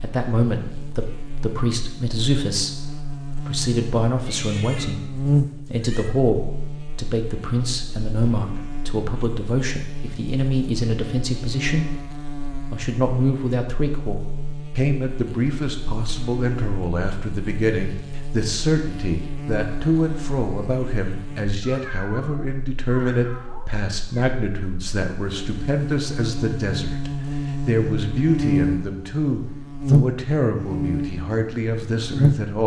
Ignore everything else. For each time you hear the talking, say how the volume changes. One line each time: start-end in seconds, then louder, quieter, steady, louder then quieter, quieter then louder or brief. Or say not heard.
0.0-32.6 steady.